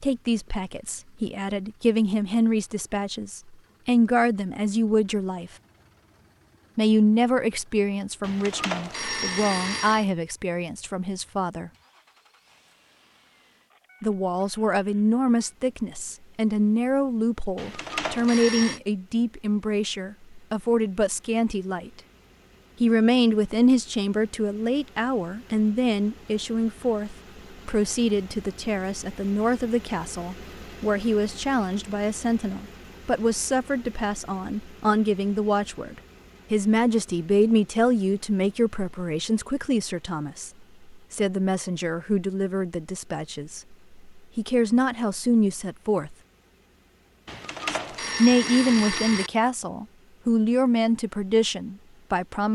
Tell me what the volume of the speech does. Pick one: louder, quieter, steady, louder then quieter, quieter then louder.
steady.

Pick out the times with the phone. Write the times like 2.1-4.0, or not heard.
8.2-10.1, 17.6-18.8, 47.2-49.3.